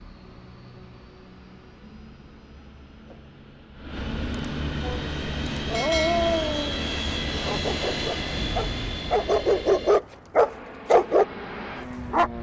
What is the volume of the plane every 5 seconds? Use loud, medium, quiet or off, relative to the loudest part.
medium, loud, medium.